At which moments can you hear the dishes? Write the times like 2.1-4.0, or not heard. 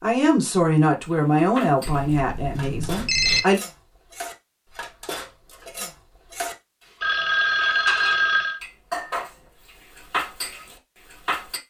1.1-11.6.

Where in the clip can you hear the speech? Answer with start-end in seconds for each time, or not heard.
0.0-3.6.